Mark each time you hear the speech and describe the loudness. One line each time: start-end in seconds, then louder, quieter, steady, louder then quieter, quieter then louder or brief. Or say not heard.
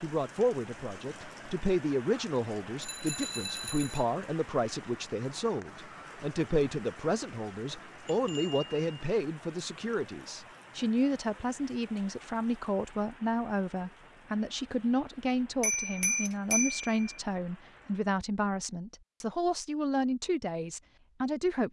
0.0-21.6 steady.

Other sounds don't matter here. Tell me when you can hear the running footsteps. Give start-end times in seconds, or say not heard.
not heard.